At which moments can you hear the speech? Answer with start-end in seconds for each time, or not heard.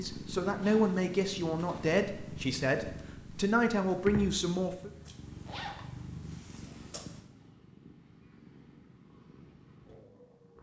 0.0-4.9.